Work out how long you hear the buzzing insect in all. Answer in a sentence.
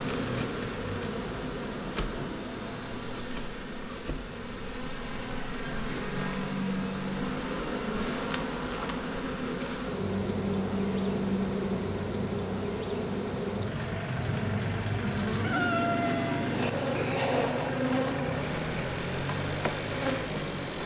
The buzzing insect can be heard for 21 seconds in total.